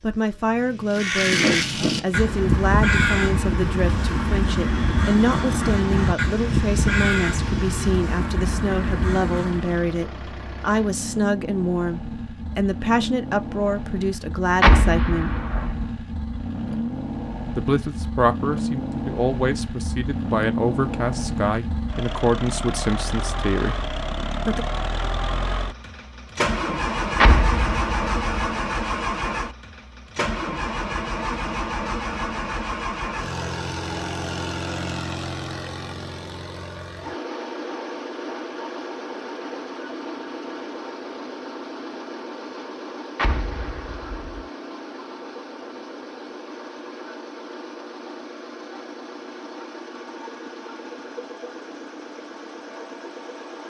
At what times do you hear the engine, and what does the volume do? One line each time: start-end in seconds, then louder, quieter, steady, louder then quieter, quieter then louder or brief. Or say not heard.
0.0-53.6 louder then quieter.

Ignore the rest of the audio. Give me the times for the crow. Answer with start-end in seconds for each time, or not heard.
0.9-9.8.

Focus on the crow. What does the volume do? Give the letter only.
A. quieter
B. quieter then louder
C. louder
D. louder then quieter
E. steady
A.